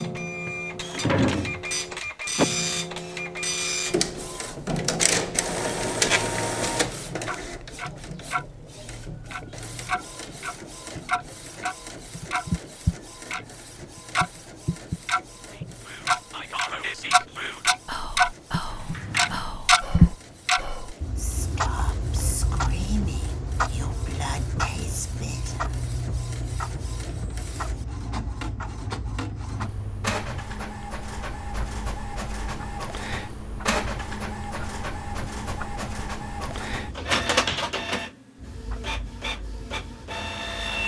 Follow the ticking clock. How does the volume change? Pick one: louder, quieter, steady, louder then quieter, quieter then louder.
louder then quieter.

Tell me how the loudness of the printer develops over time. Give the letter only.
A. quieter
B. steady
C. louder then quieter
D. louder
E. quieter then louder
E.